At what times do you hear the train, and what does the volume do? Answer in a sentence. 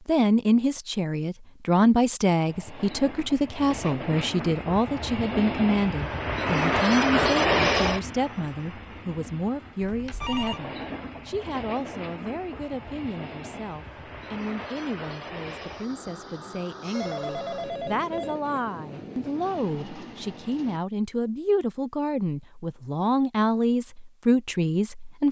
The train can be heard from 2.5 to 20.8 s, getting louder then quieter.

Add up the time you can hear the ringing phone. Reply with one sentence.
You can hear the ringing phone for 2 seconds altogether.